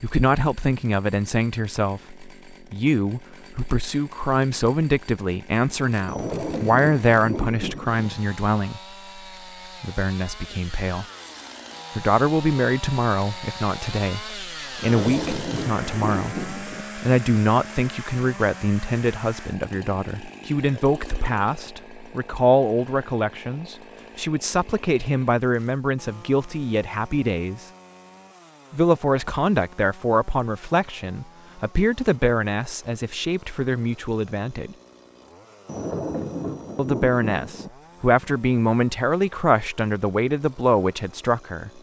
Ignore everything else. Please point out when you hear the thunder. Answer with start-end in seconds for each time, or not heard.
6.0-8.1, 14.8-16.9, 35.6-37.7.